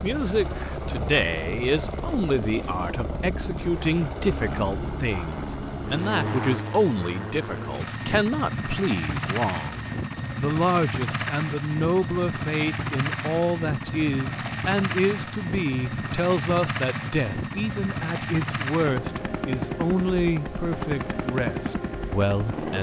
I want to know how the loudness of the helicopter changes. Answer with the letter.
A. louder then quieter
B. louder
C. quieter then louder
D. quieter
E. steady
E.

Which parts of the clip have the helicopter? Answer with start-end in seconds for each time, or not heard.
0.0-22.7.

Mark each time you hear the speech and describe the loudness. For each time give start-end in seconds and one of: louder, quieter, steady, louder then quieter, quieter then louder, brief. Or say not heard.
0.0-22.7 steady.